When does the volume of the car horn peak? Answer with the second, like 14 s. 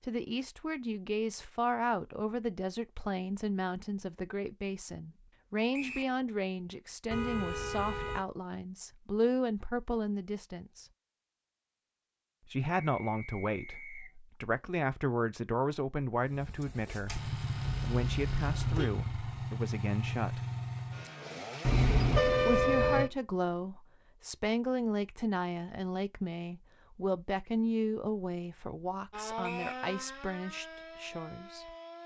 22 s.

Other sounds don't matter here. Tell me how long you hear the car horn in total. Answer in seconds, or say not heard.
4 s.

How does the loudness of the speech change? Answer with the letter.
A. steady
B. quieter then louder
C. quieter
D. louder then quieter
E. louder
A.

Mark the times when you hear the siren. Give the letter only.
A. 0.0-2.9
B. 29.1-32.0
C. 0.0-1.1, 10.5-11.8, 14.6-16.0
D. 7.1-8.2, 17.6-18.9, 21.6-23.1
B.